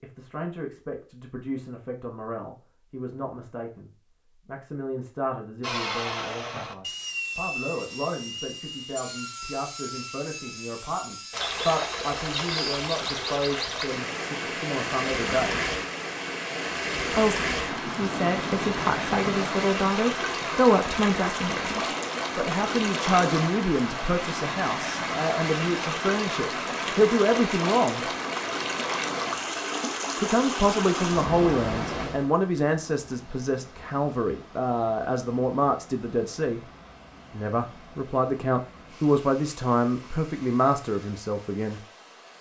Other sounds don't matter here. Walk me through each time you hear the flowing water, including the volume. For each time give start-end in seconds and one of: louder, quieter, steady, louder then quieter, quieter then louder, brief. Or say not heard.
11.3-42.3 quieter.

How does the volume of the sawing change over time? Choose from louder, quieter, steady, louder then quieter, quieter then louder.
quieter.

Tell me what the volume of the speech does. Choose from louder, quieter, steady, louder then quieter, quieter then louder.
louder.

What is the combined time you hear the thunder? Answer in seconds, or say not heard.
2 s.